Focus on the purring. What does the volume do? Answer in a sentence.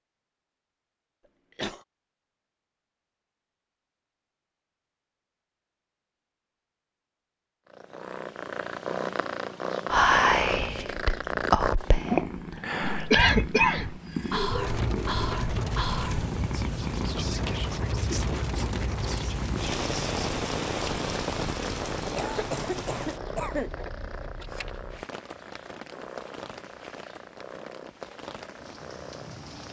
The volume of the purring goes down.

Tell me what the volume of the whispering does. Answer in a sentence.
The volume of the whispering goes down.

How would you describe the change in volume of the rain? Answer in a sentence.
The volume of the rain goes down.